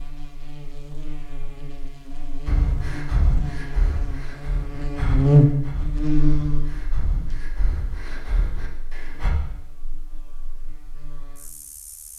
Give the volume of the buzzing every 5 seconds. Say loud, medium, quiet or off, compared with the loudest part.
quiet, loud, quiet.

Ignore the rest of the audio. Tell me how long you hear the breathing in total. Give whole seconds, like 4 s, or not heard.
7 s.